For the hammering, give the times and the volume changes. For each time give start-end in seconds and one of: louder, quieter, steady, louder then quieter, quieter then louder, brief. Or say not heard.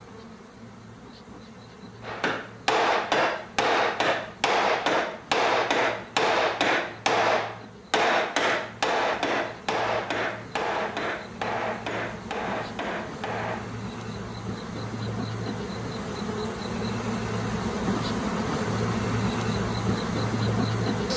2.0-13.8 quieter.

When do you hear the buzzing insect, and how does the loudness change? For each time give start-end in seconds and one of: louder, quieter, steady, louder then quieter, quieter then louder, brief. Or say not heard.
0.0-21.1 louder.